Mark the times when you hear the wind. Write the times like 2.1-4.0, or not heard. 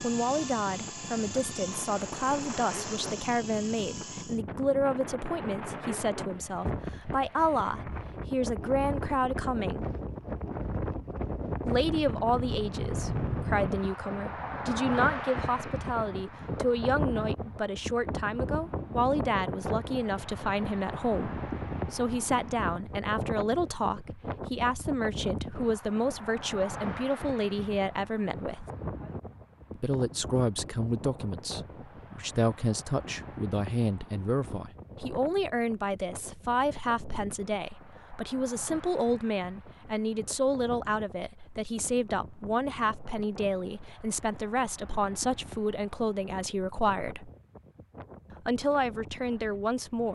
0.0-50.1.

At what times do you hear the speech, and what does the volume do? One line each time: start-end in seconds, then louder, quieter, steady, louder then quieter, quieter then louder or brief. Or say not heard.
0.0-9.9 steady
11.7-28.6 steady
29.8-47.3 steady
48.5-50.1 brief.